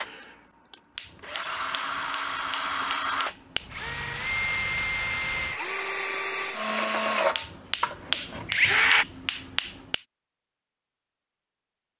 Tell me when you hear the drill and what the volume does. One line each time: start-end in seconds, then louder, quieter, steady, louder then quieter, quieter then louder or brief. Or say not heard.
0.0-9.1 louder.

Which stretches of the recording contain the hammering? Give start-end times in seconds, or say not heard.
0.9-3.7, 7.3-10.1.